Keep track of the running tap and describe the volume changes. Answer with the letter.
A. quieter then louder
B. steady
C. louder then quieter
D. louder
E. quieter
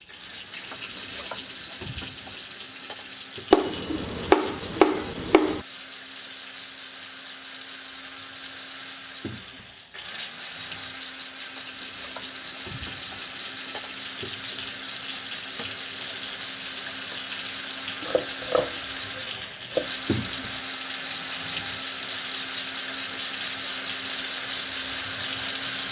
A.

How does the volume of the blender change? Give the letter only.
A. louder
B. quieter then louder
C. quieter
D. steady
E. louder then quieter
A.